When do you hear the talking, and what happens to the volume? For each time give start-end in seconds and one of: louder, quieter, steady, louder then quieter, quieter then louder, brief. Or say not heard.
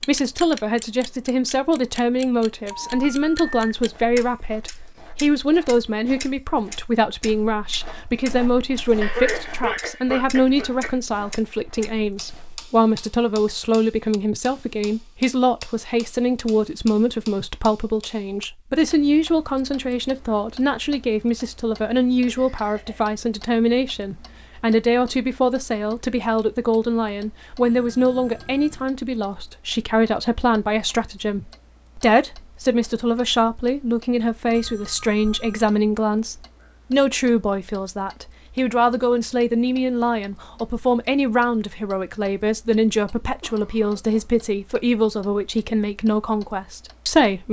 0.0-47.4 steady.